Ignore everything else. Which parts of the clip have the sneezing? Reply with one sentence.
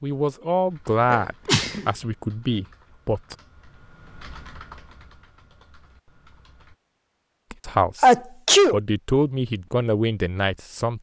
The sneezing can be heard from 1.1 to 1.9 s and from 8.0 to 8.8 s.